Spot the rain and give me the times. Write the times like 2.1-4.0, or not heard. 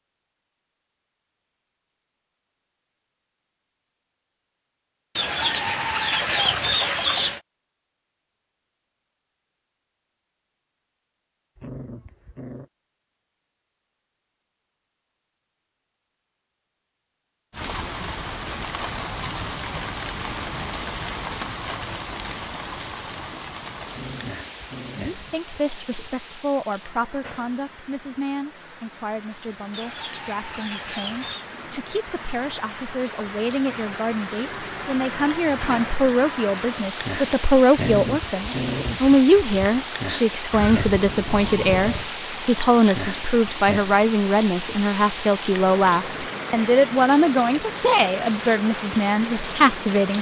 17.5-50.1.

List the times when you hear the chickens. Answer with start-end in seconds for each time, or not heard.
5.2-7.4, 29.7-31.4, 40.5-42.1.